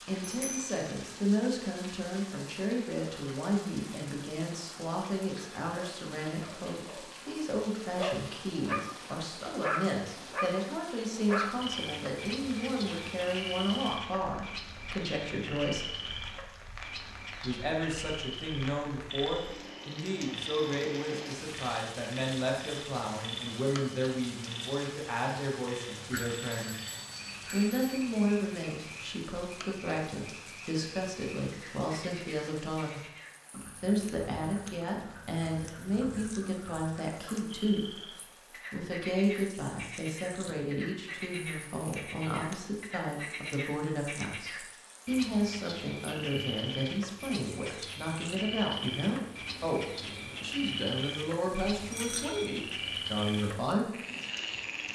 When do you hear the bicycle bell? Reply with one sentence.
The bicycle bell can be heard from 0.2 to 0.8 s, from 26.1 to 28.1 s and from 51.9 to 52.5 s.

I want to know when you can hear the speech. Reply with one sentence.
You can hear the speech from 0.1 to 15.9 s, from 17.4 to 26.9 s, from 27.4 to 33.0 s, from 33.8 to 38.0 s and from 38.7 to 53.9 s.